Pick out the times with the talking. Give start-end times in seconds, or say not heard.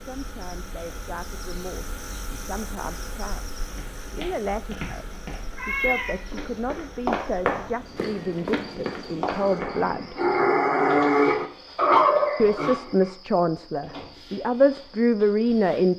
0.0-3.5, 4.1-10.2, 12.3-15.9.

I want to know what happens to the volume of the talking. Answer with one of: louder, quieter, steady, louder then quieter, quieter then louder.
louder.